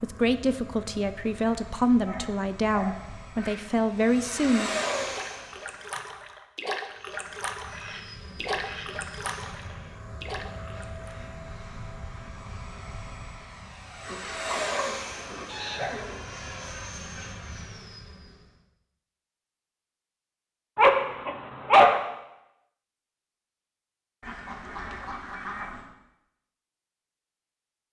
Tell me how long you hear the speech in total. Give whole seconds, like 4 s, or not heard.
5 s.